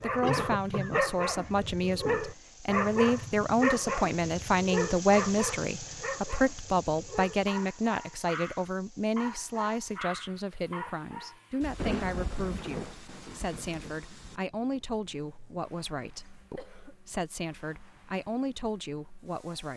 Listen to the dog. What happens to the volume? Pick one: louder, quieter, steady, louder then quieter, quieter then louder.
quieter.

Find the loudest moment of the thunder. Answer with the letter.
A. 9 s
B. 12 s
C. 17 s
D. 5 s
B.